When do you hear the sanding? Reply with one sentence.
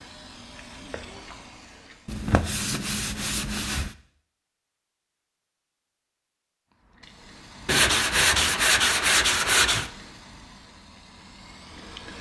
The sanding can be heard from 2.0 to 3.9 s and from 7.7 to 9.9 s.